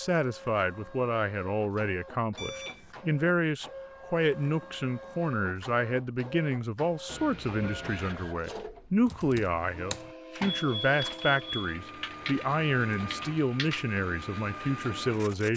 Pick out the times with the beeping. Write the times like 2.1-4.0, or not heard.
2.4-3.0, 7.0-8.2, 10.6-11.8.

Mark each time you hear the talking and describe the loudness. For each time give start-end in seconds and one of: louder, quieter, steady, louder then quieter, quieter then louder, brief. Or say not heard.
0.0-15.5 steady.